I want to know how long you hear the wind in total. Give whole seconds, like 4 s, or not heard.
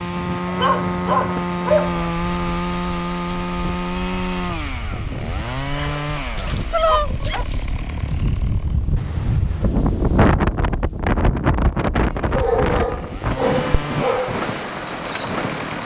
16 s.